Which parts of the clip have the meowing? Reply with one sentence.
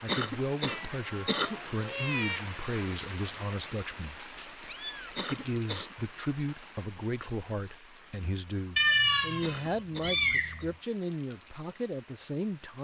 You can hear the meowing from 0.7 to 2.4 s, from 4.7 to 5.1 s and from 8.8 to 10.8 s.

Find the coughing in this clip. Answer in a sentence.
The coughing can be heard from 0.1 to 1.6 s, from 5.2 to 6.0 s and from 9.4 to 10.7 s.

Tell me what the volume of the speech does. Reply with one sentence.
The loudness of the speech stays about the same.